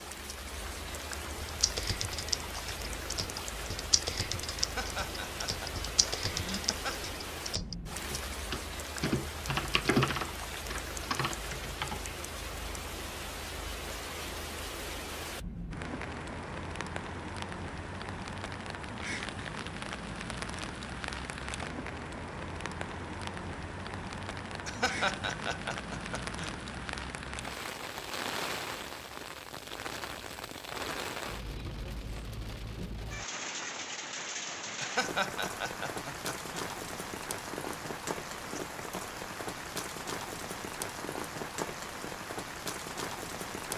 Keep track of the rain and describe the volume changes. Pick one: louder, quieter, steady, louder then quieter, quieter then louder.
steady.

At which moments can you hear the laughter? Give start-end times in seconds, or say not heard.
4.6-7.1, 24.6-26.5, 34.8-36.4.